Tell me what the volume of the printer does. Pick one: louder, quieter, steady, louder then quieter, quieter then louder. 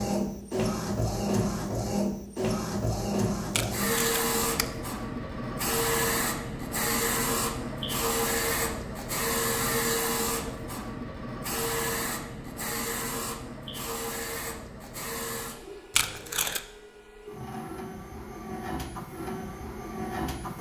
quieter.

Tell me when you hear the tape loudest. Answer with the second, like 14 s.
16 s.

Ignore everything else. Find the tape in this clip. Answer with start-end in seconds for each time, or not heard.
3.5-4.7, 15.9-16.6.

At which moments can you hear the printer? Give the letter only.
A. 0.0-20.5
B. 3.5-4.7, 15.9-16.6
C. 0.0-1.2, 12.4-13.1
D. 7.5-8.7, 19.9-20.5
A.